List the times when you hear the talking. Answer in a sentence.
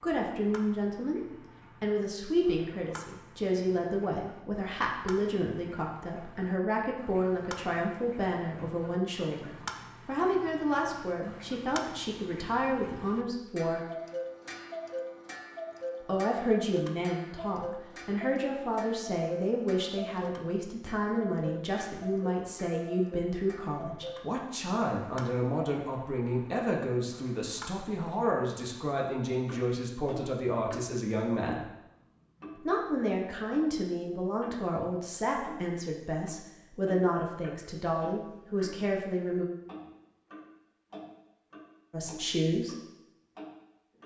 The talking can be heard from 0.0 to 1.2 s, from 1.8 to 13.8 s, from 16.1 to 31.6 s, from 32.5 to 39.5 s and from 41.9 to 42.8 s.